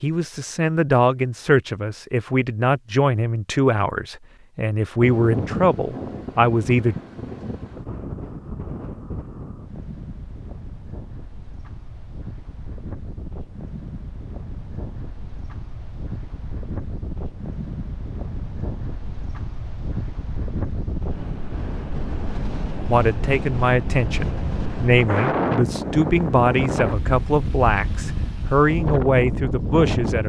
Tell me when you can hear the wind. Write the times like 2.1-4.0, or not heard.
5.0-30.2.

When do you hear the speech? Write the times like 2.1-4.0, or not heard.
0.0-7.0, 22.8-30.2.